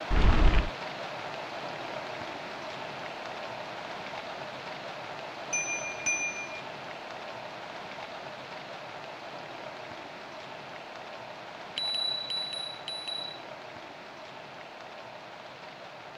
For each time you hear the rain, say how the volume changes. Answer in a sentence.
You can hear the rain from 0.0 to 16.1 s, getting quieter.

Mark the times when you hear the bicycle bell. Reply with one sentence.
You can hear the bicycle bell from 0.1 to 0.7 s, from 5.5 to 6.6 s and from 11.8 to 13.3 s.